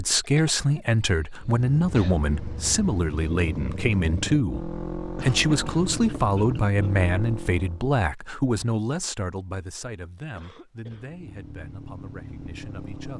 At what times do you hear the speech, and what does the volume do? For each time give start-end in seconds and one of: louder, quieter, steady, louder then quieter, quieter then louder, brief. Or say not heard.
0.0-13.1 quieter.